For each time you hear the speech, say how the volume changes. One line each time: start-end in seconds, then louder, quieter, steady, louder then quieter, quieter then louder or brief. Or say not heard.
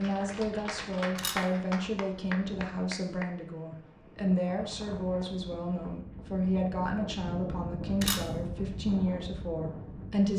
0.0-10.3 steady.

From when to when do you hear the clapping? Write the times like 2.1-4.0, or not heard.
0.0-3.2.